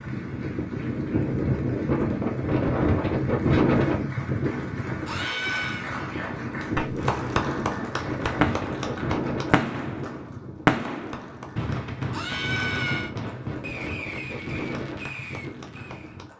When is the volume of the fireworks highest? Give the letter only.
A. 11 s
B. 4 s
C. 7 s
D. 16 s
A.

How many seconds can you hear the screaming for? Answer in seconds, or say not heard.
2 s.